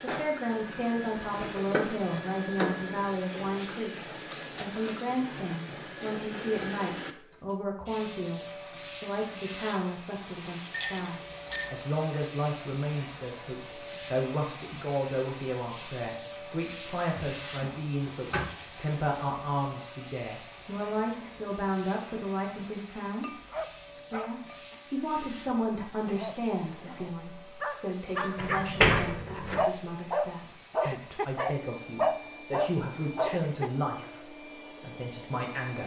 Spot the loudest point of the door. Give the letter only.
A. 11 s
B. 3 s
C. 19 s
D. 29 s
D.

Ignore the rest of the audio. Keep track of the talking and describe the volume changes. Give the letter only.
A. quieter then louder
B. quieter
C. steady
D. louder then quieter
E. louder
C.